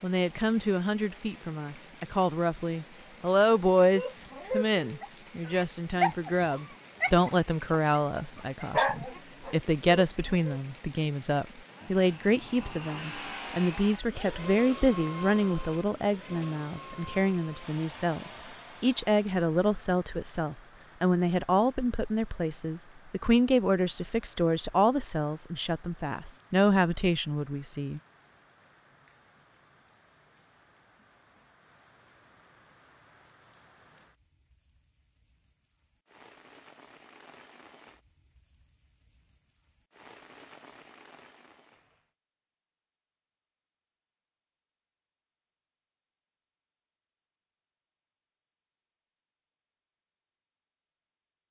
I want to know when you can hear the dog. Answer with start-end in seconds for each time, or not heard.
3.5-10.6.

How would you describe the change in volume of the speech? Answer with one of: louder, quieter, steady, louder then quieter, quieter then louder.
steady.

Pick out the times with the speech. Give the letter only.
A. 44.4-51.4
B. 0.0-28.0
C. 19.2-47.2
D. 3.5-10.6
B.